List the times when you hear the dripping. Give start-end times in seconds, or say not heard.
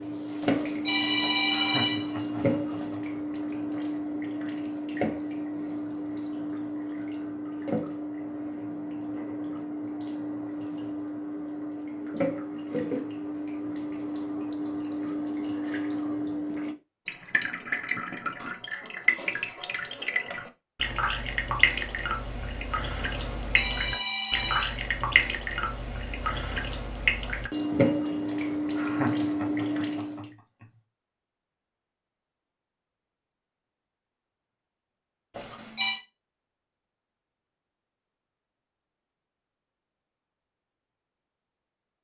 0.0-30.3.